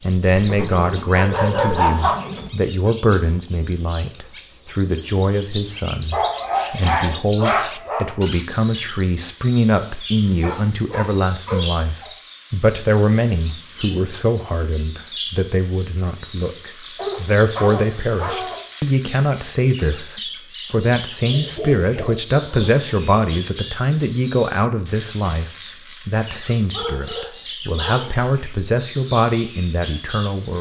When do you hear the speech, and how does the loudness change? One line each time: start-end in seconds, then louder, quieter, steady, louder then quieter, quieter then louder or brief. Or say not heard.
0.0-30.5 steady.